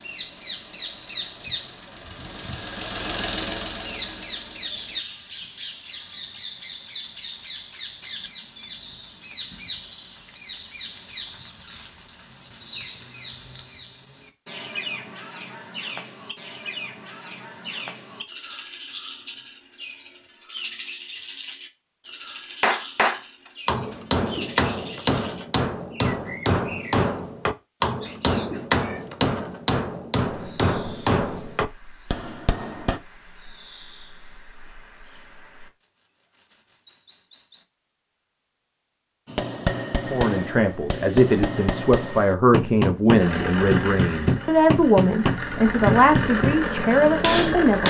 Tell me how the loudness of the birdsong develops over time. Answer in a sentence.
The loudness of the birdsong goes down.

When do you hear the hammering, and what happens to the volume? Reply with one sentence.
You can hear the hammering from 22.6 to 33.0 s, at a steady volume; from 39.2 to 46.5 s, at a steady volume; and briefly from 47.2 to 47.8 s.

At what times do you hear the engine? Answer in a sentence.
You can hear the engine from 0.0 to 5.0 s and from 43.1 to 47.8 s.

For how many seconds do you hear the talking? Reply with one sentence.
You can hear the talking for 8 seconds altogether.